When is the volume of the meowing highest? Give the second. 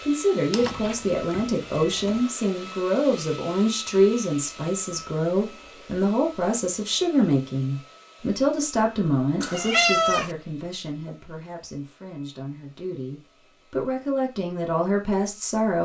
10 s.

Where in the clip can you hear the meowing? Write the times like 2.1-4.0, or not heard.
0.5-2.2, 9.4-10.3.